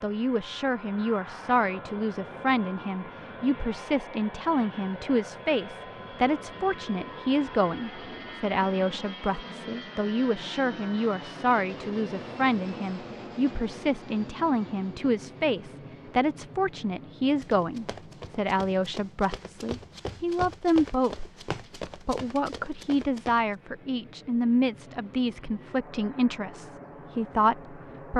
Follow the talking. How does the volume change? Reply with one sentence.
The loudness of the talking stays about the same.